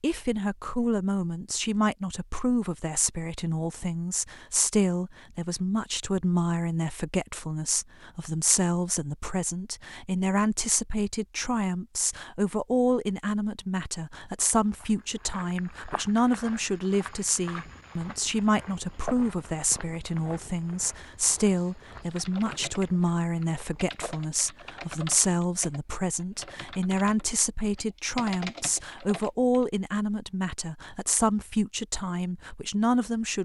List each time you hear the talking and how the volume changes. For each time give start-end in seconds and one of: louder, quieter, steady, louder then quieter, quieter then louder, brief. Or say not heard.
0.0-33.3 steady.